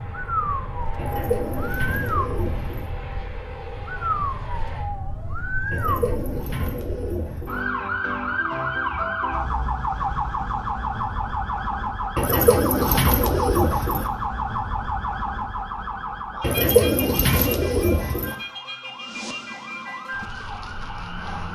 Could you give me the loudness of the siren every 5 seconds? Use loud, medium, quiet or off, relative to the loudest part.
loud, loud, loud, medium, medium.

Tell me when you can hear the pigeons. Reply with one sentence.
The pigeons can be heard from 0.9 to 2.9 s, from 5.7 to 7.7 s, from 12.2 to 14.1 s and from 16.4 to 18.4 s.